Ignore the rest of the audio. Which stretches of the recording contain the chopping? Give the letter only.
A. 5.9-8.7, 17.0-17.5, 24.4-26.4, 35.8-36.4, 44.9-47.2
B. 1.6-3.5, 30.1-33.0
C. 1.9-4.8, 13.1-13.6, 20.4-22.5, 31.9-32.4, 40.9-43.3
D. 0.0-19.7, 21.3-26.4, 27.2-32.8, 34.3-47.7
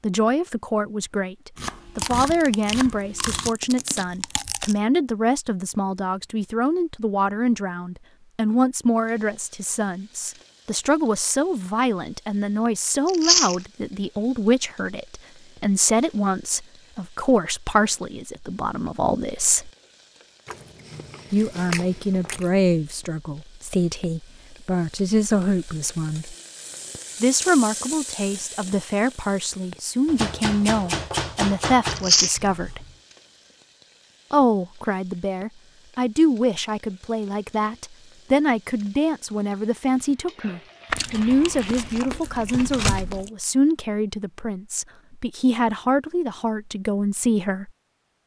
B.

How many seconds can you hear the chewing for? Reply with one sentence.
The chewing can be heard for 8 seconds in total.